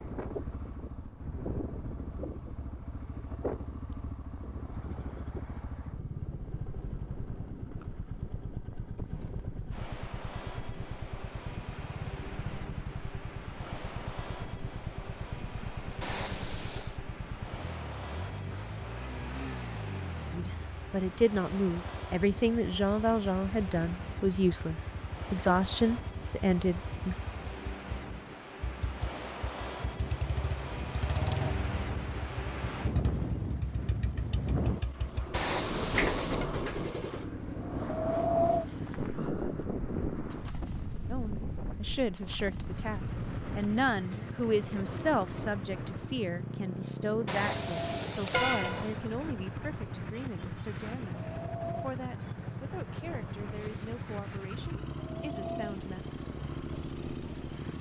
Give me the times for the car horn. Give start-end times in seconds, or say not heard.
16.0-17.0, 35.3-36.5, 47.2-49.0.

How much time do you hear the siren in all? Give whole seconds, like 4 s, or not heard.
not heard.